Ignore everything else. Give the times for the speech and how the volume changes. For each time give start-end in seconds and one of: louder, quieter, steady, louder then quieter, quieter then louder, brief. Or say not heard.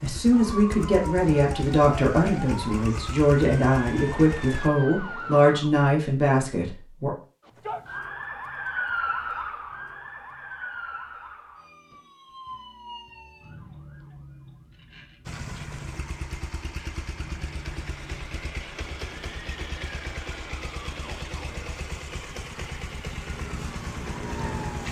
0.0-7.2 steady.